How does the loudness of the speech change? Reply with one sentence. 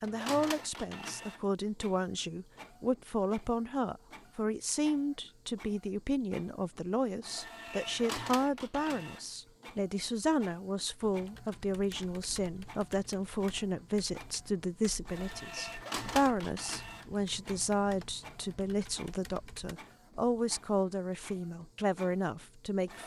The loudness of the speech stays about the same.